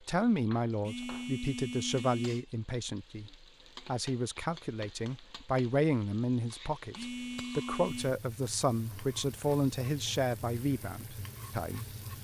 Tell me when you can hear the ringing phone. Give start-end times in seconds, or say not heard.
0.8-2.5, 7.0-8.2.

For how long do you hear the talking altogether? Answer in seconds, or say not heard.
12 s.